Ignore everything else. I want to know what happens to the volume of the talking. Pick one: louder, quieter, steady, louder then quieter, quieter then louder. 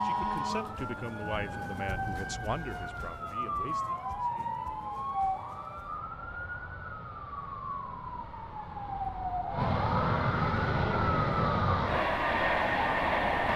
quieter.